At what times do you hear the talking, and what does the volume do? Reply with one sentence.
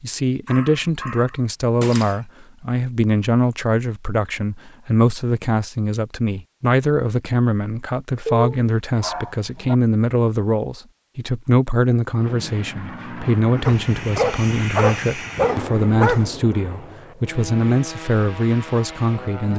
The talking can be heard from 0.0 to 19.5 s, at a steady volume.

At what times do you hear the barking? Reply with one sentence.
You can hear the barking from 0.5 to 2.1 s, from 8.2 to 9.8 s and from 13.7 to 16.2 s.